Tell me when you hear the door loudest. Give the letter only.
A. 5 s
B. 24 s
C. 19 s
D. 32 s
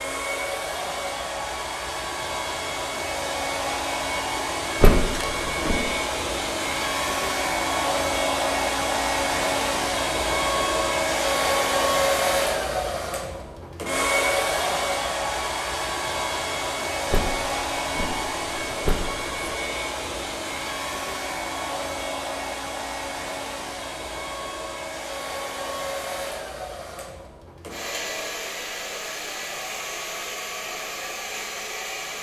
A.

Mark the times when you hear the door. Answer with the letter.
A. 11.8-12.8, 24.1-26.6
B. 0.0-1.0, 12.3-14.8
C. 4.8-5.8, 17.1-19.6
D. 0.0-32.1
C.